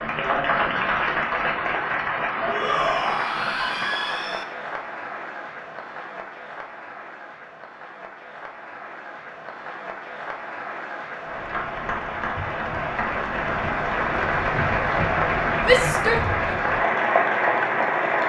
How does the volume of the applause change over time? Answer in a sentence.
The loudness of the applause goes down, then up.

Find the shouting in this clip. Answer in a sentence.
You can hear the shouting from 2.5 to 4.5 s and from 15.6 to 16.6 s.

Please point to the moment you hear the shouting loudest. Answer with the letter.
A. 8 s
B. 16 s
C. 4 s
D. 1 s
B.